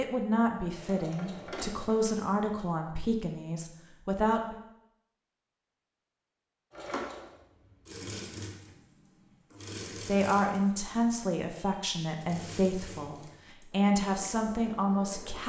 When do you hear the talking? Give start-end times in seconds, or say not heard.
0.0-4.5, 10.0-15.4.